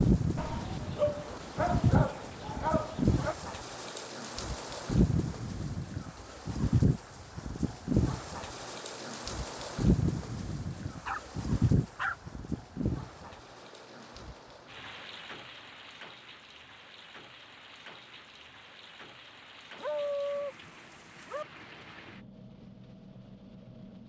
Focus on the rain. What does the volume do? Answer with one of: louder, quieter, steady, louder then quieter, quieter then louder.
quieter.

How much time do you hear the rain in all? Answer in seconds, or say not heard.
24 s.